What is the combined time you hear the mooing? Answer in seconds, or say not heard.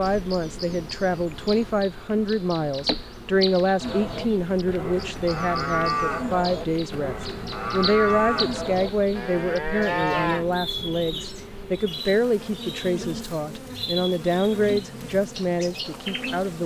7 s.